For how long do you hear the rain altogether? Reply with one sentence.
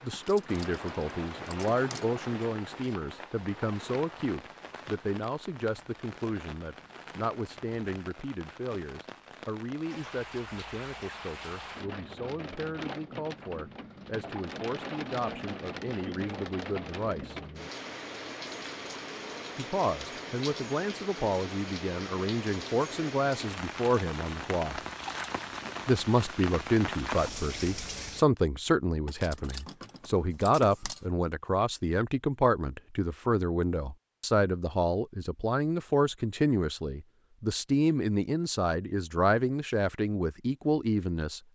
You can hear the rain for 28 seconds altogether.